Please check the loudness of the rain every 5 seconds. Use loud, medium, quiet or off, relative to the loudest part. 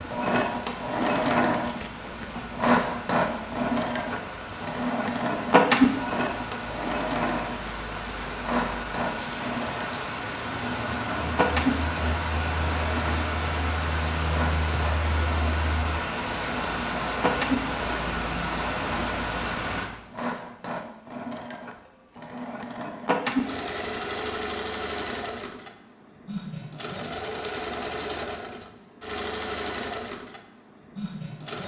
medium, medium, loud, loud, off, off, off.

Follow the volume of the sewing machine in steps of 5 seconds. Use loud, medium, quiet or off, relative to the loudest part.
loud, loud, medium, medium, medium, medium, quiet.